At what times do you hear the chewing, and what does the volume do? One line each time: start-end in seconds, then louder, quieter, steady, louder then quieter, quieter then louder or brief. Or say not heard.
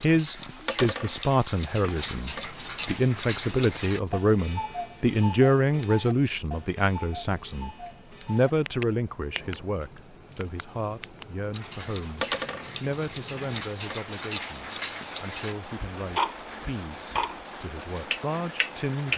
not heard.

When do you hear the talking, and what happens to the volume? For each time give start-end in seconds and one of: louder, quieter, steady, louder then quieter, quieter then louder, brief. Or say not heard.
0.0-19.1 quieter.